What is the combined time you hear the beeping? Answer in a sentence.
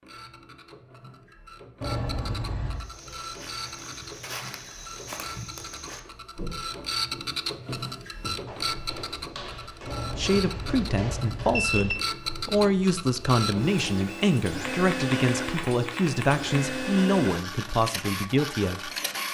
The beeping can be heard for 3 seconds in total.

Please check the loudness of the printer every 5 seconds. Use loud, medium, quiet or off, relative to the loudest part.
medium, loud, loud, loud.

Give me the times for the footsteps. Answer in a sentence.
The footsteps can be heard from 2.8 to 12.4 s.